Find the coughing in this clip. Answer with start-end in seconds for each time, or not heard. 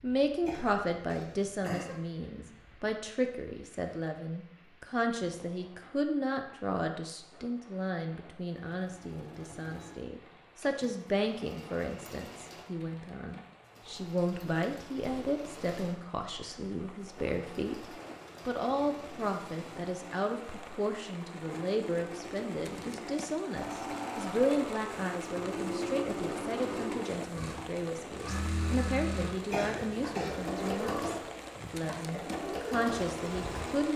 0.5-1.9, 29.5-30.5.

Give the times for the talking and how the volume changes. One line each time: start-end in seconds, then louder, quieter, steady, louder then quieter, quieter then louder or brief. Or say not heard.
0.0-33.9 steady.